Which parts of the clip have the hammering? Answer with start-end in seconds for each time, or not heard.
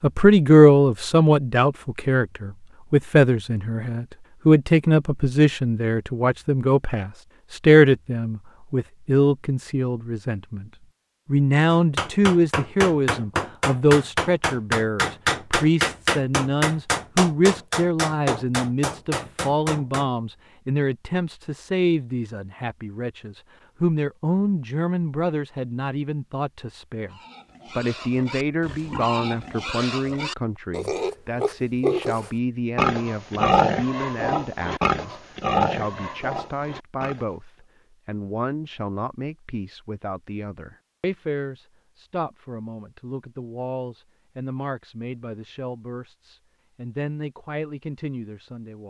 11.7-20.1.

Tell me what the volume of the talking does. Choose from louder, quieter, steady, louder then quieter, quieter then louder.
quieter.